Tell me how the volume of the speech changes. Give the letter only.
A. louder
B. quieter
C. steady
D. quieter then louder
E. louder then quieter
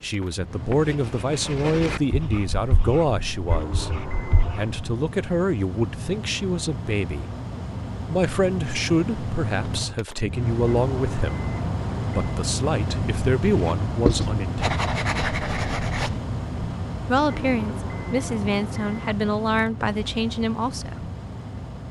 C.